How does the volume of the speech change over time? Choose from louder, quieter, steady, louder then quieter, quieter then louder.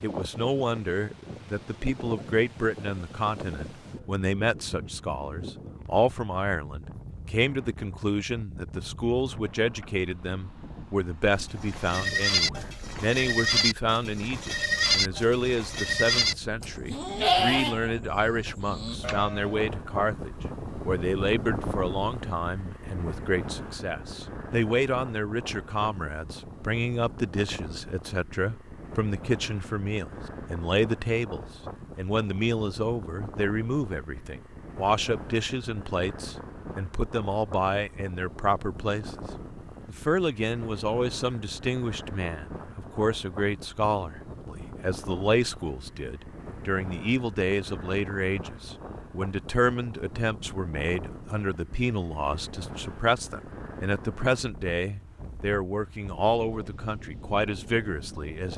steady.